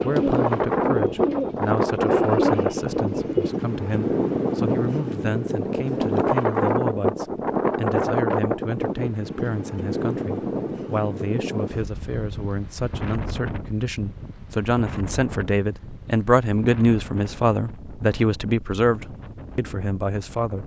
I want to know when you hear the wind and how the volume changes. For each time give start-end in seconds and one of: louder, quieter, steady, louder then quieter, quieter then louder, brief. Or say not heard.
0.0-20.6 quieter.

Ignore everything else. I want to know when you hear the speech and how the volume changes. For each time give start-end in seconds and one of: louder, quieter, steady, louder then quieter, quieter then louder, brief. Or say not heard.
0.0-20.6 louder.